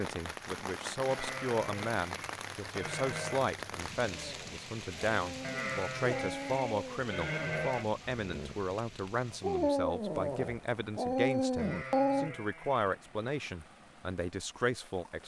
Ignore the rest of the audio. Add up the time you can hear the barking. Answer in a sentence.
The barking can be heard for 8 seconds in total.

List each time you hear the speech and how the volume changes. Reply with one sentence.
The speech can be heard from 0.0 to 15.2 s, at a steady volume.